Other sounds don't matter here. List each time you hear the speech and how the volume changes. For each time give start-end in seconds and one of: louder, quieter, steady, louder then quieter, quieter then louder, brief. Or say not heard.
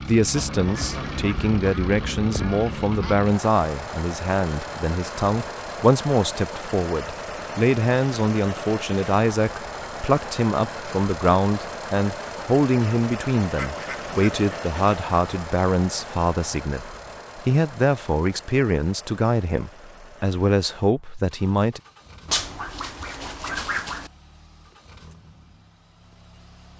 0.0-21.8 steady.